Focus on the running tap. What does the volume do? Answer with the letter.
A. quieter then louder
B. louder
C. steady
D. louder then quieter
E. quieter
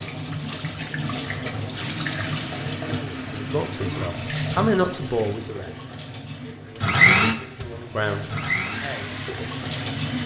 A.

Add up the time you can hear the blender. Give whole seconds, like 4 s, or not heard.
6 s.